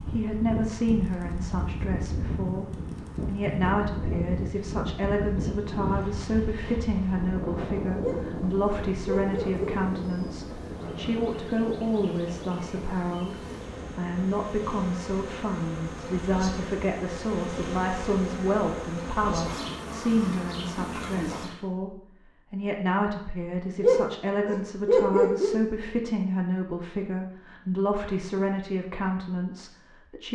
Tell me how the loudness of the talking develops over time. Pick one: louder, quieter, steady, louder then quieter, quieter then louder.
steady.